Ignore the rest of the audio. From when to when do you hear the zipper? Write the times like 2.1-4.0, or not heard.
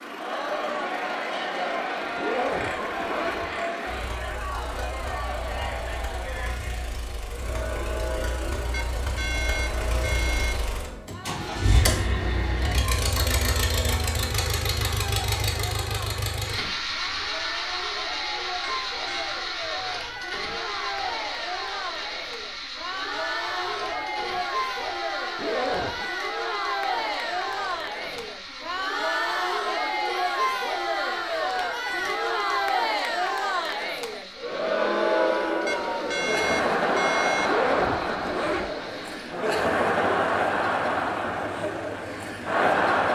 2.1-3.5, 25.4-26.1, 37.4-38.8.